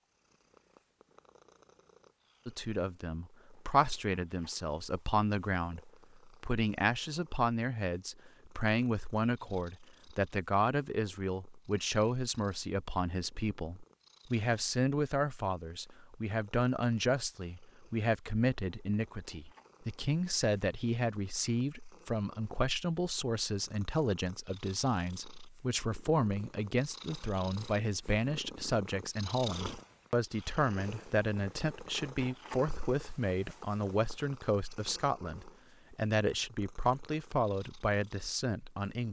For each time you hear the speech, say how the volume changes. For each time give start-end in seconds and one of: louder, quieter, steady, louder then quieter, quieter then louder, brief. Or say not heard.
2.5-39.0 steady.